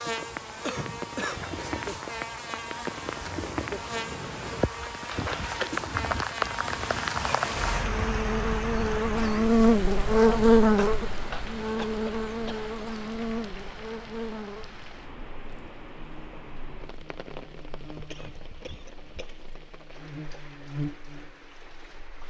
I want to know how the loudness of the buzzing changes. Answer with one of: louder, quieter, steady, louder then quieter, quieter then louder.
louder then quieter.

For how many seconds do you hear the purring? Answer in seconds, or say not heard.
not heard.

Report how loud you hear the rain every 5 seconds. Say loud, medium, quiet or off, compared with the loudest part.
medium, loud, medium, quiet, quiet.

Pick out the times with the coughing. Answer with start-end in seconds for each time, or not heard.
0.2-1.6, 10.7-12.7, 18.1-19.4.